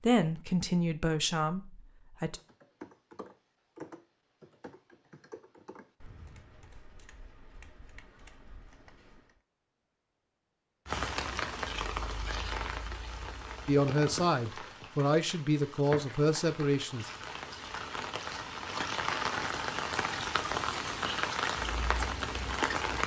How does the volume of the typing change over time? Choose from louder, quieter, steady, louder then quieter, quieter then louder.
quieter.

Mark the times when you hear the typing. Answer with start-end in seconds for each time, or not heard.
2.4-9.4.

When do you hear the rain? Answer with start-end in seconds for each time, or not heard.
10.8-23.0.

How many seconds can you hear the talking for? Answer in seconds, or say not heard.
6 s.